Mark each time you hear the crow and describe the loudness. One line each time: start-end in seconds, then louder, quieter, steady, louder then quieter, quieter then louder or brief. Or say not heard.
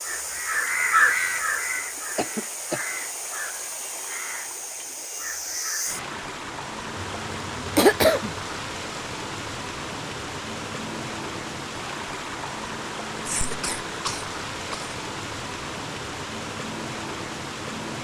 0.0-6.0 quieter.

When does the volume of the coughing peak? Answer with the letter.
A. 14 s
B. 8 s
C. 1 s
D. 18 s
B.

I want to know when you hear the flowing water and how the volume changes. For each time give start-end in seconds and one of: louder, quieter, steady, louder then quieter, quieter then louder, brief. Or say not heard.
0.0-18.0 steady.